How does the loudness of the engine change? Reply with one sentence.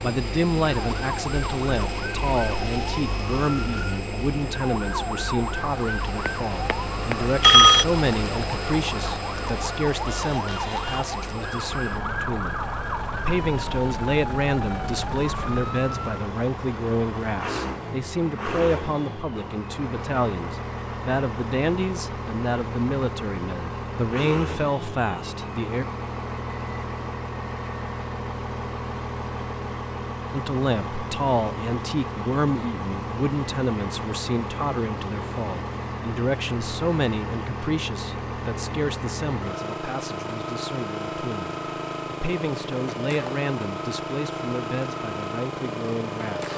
The volume of the engine stays about the same.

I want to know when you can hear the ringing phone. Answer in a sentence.
You can hear the ringing phone from 6.2 to 7.8 s.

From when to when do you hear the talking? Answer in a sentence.
You can hear the talking from 0.0 to 25.9 s and from 30.3 to 46.5 s.